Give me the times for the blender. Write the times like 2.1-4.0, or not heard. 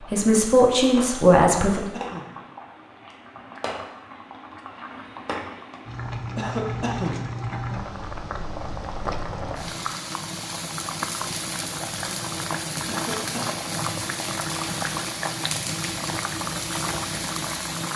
not heard.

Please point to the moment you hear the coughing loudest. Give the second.
7 s.